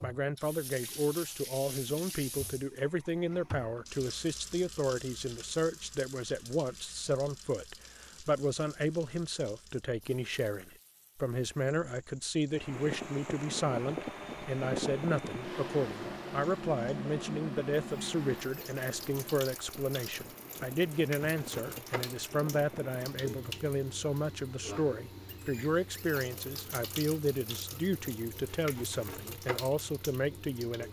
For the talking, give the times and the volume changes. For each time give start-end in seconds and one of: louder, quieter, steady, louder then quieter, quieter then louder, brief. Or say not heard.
0.0-30.8 steady.